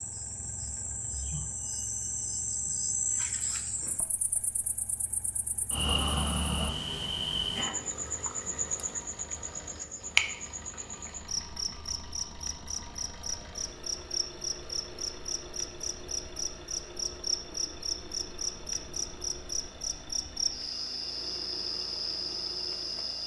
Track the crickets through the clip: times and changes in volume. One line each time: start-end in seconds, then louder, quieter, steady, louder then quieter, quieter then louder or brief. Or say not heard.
0.0-23.2 steady.